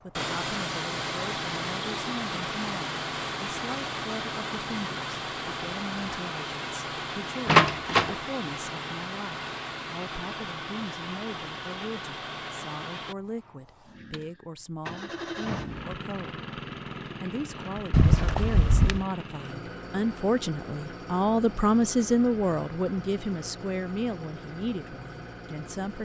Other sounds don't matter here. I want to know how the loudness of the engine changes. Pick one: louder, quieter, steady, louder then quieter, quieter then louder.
quieter.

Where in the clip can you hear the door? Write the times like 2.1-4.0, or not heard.
7.5-8.2, 17.9-19.1.